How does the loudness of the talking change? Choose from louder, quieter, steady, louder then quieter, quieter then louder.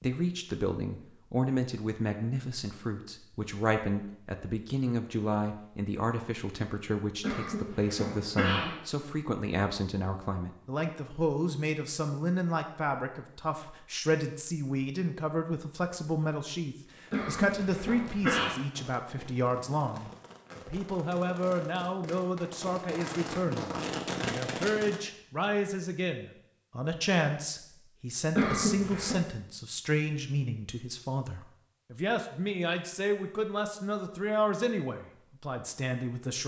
steady.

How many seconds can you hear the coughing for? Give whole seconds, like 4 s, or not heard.
4 s.